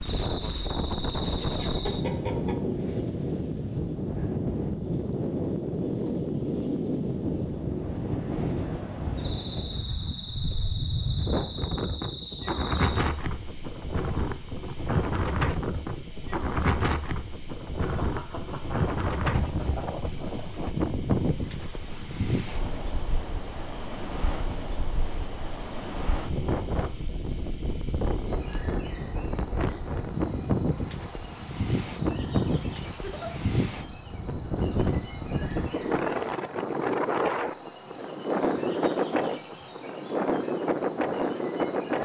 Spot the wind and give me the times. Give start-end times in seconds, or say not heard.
0.0-41.9.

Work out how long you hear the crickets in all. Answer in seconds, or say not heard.
42 s.